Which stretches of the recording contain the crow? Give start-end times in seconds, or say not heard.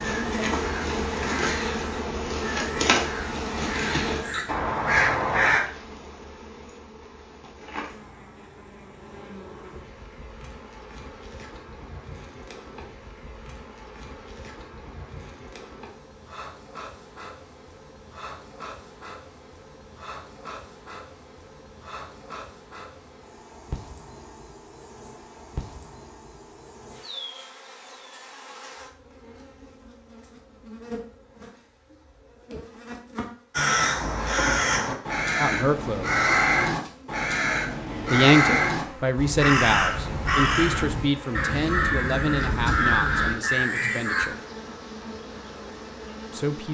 0.0-5.6, 33.5-44.3.